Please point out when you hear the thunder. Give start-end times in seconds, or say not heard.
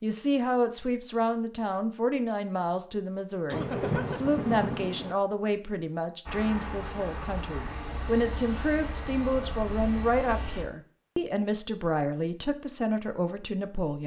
3.5-5.2.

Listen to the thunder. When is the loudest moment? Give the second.
4 s.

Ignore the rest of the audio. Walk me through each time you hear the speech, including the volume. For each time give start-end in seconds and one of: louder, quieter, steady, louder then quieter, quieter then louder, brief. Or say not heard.
0.0-14.0 steady.